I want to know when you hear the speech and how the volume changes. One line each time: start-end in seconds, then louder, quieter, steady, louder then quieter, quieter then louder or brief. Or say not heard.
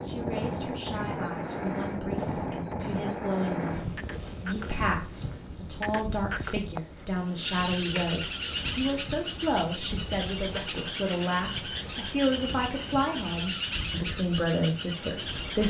0.0-15.6 louder.